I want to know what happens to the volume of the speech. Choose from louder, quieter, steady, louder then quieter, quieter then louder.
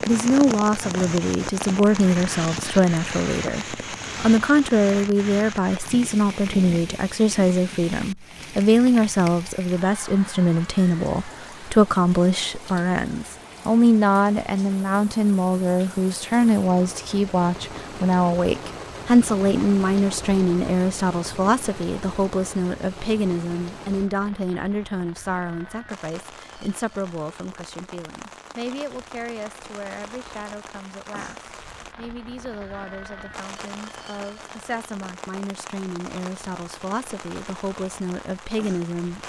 quieter.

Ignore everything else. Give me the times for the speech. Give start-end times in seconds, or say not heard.
0.1-39.2.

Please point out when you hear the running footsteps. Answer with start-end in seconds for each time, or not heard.
not heard.